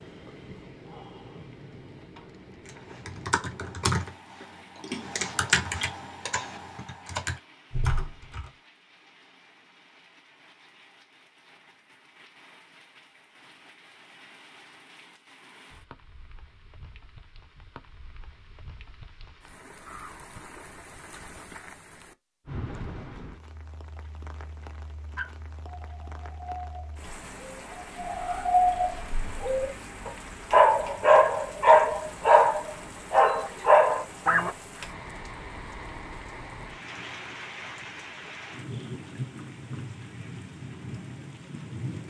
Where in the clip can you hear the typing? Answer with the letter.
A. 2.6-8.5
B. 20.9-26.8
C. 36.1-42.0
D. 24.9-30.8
A.